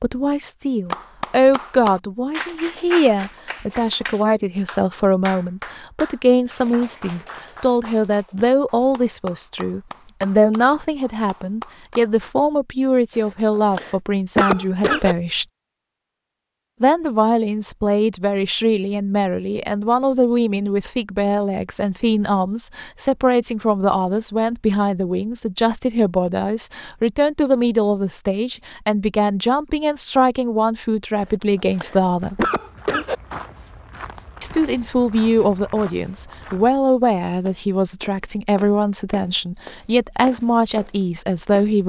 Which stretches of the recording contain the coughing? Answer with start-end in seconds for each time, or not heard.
13.2-15.2, 31.1-33.1.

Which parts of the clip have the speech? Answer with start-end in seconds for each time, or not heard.
0.0-15.4, 16.8-32.5, 34.4-41.8.